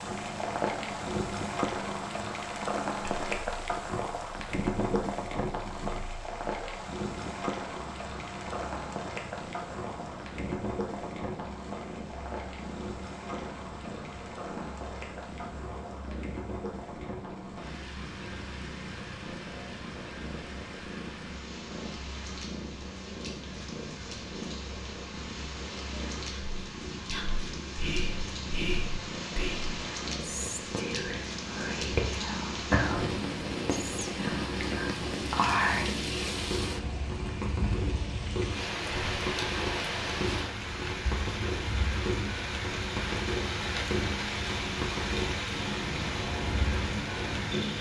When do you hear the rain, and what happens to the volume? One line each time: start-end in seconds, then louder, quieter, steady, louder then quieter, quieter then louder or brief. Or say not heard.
0.0-47.7 quieter then louder.